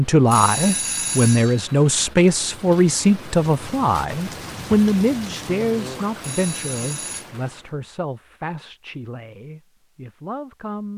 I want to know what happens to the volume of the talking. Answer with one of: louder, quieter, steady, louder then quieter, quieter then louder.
quieter.